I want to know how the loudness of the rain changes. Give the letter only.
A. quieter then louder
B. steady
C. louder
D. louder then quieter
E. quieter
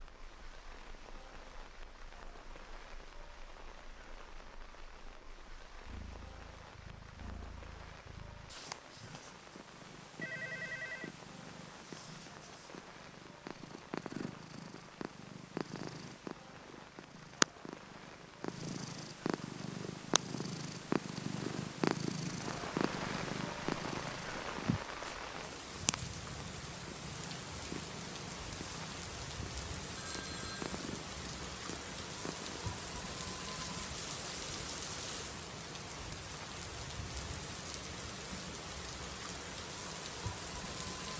C.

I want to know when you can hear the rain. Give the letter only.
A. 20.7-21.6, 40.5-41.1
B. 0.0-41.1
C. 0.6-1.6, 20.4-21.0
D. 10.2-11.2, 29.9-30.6
B.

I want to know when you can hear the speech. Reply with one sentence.
You can't hear the speech here.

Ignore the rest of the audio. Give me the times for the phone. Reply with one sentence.
The phone can be heard from 10.2 to 11.2 s and from 29.9 to 30.6 s.